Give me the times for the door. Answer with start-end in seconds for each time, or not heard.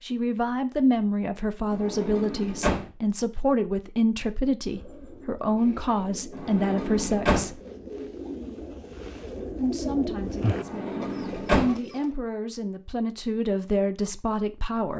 1.7-2.9, 6.3-7.5, 10.6-11.8.